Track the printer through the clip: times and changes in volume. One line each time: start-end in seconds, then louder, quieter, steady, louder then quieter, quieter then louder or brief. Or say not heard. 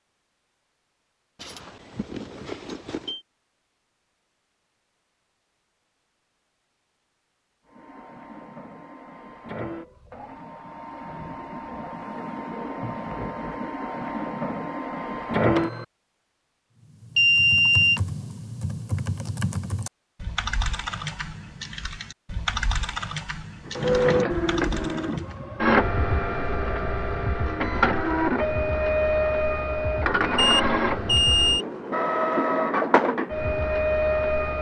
7.7-15.8 louder
23.6-34.5 steady.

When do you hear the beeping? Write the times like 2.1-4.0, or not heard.
1.4-3.2, 17.1-18.0, 30.4-31.6.